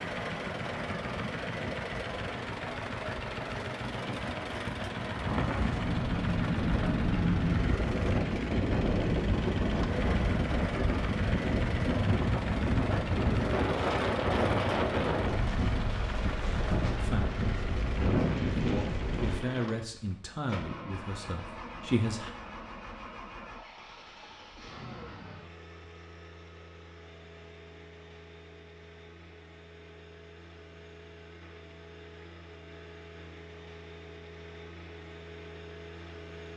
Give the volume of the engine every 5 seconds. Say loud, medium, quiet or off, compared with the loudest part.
loud, loud, loud, loud, medium, quiet, quiet, medium.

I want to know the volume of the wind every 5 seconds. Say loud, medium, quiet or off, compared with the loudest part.
quiet, loud, loud, loud, off, off, off, off.